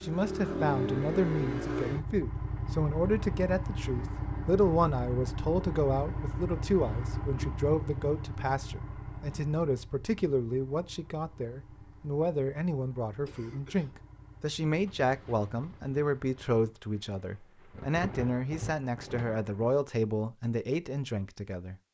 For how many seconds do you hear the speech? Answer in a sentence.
The speech can be heard for 22 seconds in total.